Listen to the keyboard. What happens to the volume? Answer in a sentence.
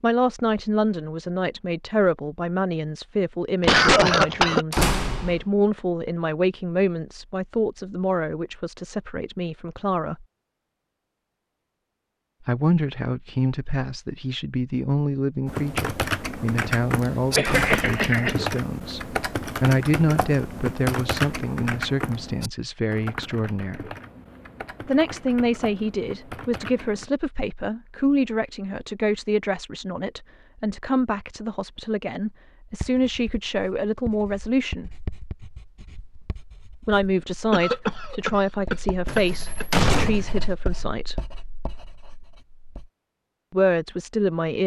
The loudness of the keyboard goes down.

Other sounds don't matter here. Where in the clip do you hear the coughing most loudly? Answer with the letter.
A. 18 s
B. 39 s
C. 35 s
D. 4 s
D.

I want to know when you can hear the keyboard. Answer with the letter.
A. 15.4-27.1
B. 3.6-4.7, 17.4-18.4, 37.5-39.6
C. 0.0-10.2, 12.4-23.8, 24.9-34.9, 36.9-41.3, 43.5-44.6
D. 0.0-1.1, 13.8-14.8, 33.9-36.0
A.